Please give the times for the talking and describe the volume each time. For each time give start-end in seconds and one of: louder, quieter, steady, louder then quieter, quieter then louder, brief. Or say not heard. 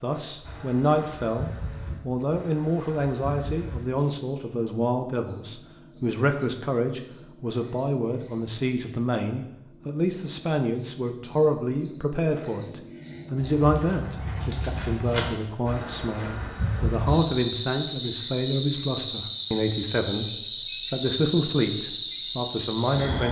0.0-23.2 steady.